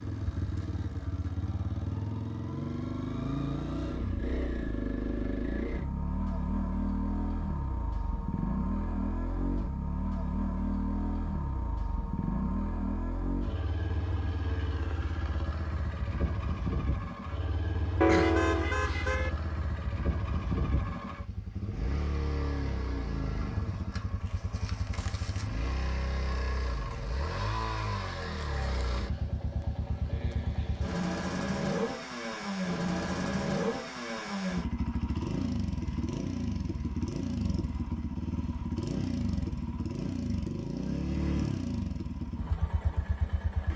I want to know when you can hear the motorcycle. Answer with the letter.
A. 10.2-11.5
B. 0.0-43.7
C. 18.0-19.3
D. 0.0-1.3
B.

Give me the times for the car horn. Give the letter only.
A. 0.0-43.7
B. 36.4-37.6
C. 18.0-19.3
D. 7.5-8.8
C.